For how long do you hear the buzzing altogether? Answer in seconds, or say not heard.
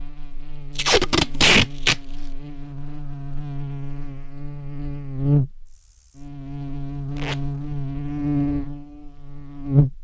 10 s.